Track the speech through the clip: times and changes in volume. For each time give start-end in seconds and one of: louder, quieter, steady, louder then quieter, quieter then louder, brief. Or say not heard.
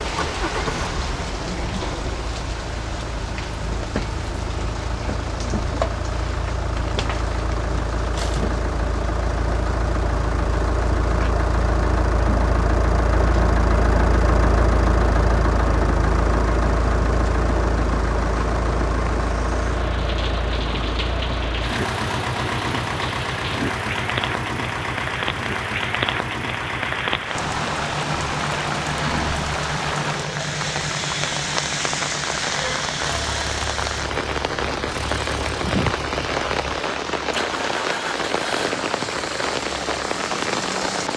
not heard.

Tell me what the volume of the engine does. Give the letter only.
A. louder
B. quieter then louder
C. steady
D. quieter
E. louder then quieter
E.